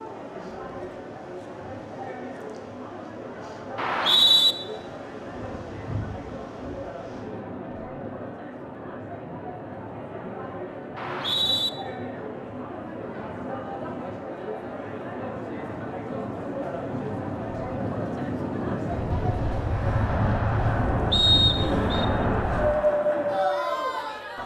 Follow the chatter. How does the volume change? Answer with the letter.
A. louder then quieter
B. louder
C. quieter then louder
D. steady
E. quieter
B.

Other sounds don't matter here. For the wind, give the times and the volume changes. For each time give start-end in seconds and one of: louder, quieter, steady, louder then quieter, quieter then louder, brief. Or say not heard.
0.0-24.4 louder.